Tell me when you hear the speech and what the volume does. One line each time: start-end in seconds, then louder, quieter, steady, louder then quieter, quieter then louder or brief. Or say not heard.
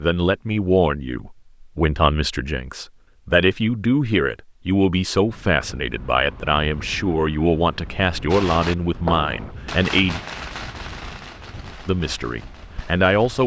0.0-10.2 steady
11.8-13.4 brief.